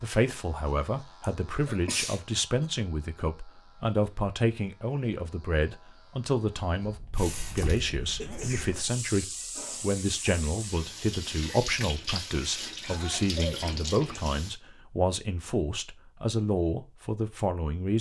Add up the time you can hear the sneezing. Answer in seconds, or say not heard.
4 s.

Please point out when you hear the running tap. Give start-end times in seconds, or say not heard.
7.2-14.6.